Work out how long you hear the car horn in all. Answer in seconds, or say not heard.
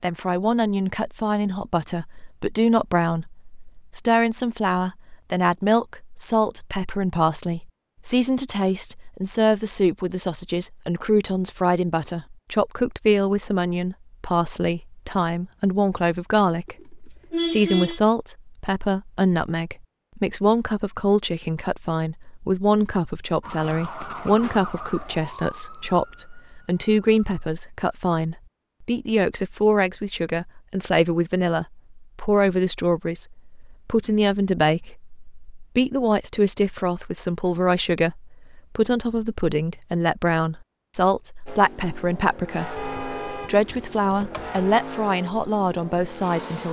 3 s.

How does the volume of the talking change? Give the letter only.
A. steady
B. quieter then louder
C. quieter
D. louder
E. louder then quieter
A.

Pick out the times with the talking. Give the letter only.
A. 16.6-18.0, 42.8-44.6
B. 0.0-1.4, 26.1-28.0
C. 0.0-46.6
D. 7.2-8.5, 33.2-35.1
C.